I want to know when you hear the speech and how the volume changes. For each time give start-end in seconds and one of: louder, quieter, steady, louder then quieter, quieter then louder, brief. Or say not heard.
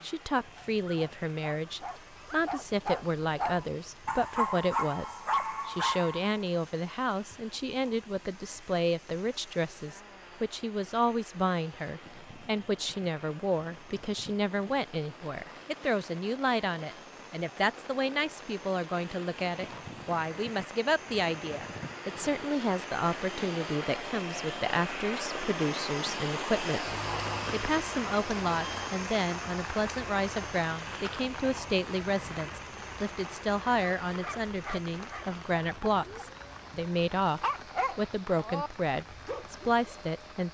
0.0-40.4 steady.